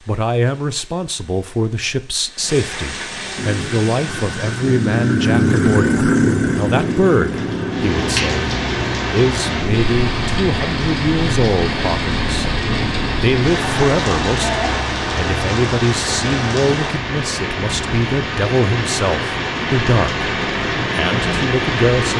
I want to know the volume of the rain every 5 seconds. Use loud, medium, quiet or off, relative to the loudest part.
quiet, loud, loud, loud, loud.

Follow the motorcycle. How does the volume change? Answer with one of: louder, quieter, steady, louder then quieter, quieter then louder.
quieter.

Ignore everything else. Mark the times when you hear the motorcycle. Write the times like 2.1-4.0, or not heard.
3.4-16.8.